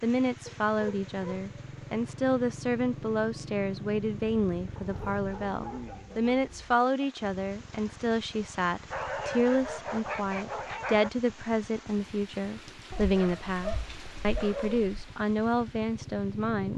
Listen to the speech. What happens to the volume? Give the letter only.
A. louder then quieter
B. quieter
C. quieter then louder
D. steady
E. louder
D.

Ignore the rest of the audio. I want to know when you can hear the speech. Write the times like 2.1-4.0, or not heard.
0.0-16.7.